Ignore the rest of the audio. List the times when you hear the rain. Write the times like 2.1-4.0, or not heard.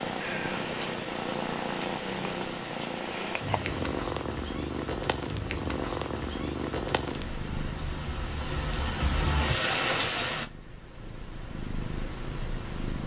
0.0-10.4.